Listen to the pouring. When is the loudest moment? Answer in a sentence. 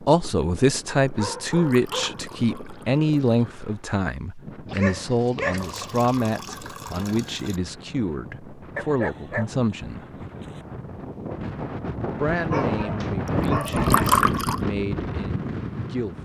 The volume of the pouring peaks at 14 seconds.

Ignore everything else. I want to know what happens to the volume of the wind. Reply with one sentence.
The volume of the wind goes up.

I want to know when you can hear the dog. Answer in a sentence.
You can hear the dog from 1.0 to 2.2 s, from 4.7 to 6.0 s, from 8.8 to 10.7 s and from 12.5 to 14.2 s.